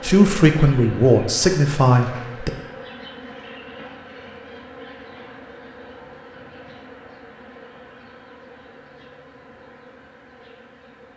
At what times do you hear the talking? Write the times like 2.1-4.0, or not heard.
0.0-2.5.